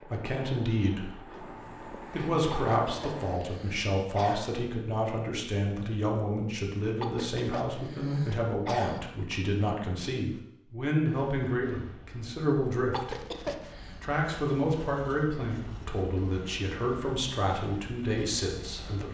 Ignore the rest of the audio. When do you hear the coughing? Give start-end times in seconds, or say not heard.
2.5-4.5, 7.0-9.0, 12.9-14.0.